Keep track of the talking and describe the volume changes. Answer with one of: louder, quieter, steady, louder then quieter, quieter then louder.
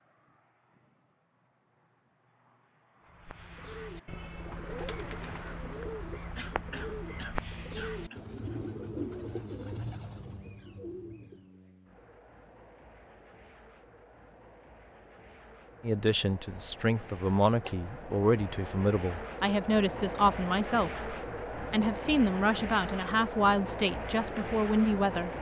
steady.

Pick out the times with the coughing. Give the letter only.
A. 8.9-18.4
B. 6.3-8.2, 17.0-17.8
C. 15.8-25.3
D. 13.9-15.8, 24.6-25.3
B.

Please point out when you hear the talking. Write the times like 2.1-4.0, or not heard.
15.8-25.3.